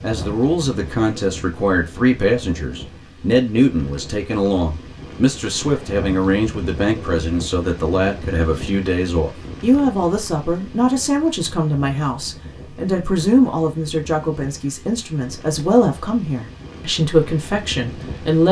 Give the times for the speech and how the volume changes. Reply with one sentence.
You can hear the speech from 0.0 to 18.4 s, at a steady volume.